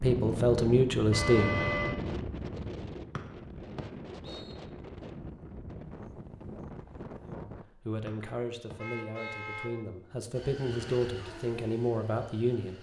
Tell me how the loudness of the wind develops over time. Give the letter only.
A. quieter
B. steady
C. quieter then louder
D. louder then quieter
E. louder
A.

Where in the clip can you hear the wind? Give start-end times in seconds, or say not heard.
0.0-7.7.